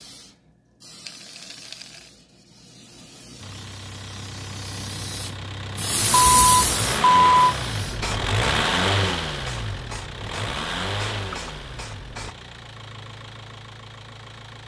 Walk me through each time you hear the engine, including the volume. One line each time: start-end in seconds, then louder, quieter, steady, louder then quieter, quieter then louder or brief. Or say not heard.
3.4-14.6 louder then quieter.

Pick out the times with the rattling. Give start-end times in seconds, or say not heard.
1.0-2.1.